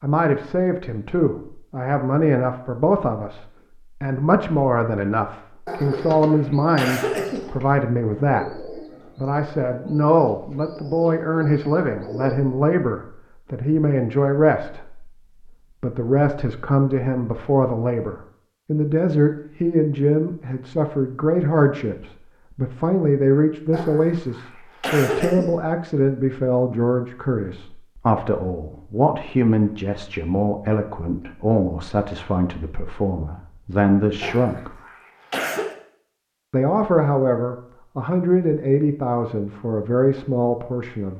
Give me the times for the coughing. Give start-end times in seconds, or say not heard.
5.7-7.5, 23.7-25.6, 34.2-35.8.